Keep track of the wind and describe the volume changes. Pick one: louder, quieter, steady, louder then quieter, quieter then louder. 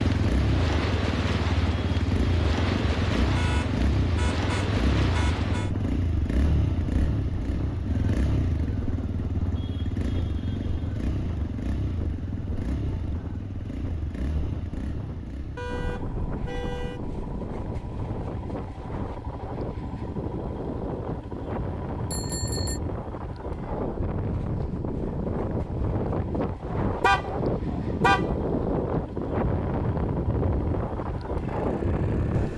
quieter then louder.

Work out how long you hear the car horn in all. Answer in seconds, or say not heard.
5 s.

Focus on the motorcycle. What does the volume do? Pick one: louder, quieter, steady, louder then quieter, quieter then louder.
quieter.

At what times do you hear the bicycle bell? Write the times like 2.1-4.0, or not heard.
22.1-22.8.